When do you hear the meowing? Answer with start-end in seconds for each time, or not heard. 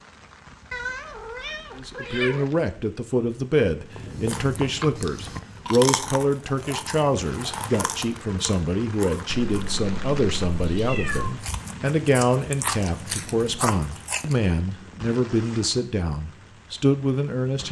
0.7-2.5, 9.2-11.3.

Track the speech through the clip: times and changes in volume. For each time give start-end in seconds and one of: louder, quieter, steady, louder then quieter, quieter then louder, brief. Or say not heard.
1.8-17.6 steady.